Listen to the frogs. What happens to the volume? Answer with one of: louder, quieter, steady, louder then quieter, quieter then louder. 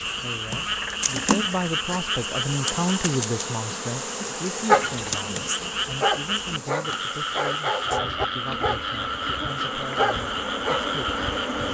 steady.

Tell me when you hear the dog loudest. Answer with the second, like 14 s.
5 s.